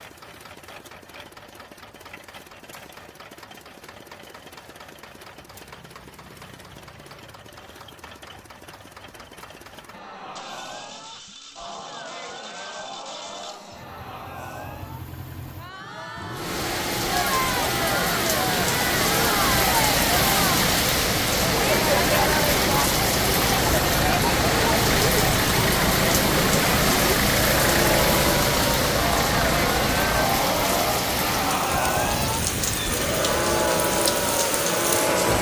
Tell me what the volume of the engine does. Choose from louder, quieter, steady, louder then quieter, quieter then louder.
louder.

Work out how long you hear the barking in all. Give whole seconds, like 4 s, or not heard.
not heard.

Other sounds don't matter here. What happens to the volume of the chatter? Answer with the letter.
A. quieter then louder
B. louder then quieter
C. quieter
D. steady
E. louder
E.